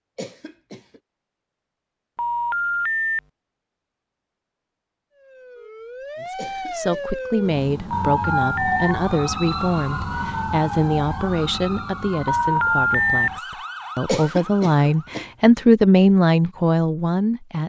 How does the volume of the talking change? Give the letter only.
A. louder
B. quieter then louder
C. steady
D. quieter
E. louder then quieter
A.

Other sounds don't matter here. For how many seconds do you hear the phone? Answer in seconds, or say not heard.
3 s.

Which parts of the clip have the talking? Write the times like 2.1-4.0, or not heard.
6.2-17.6.